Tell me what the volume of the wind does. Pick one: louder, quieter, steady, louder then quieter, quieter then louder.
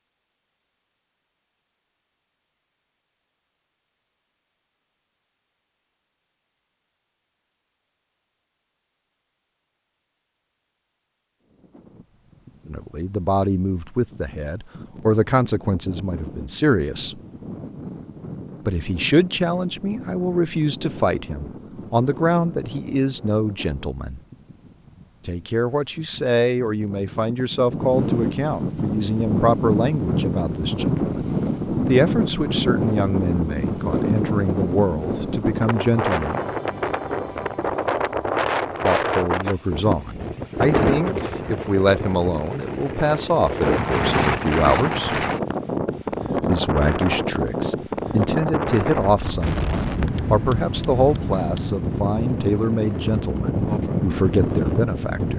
louder.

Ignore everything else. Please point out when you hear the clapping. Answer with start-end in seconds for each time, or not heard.
not heard.